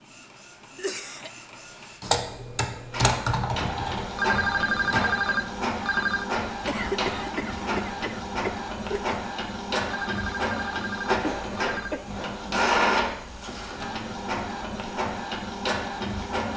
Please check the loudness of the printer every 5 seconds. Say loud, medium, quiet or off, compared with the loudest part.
medium, loud, loud, loud.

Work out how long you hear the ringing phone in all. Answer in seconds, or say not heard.
4 s.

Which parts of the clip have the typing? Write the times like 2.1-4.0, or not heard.
2.0-5.2.